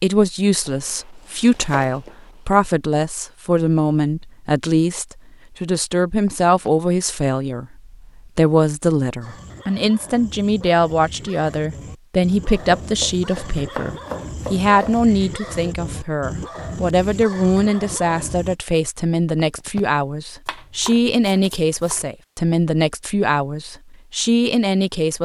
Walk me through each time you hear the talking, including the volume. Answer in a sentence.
The talking can be heard from 0.0 to 25.2 s, at a steady volume.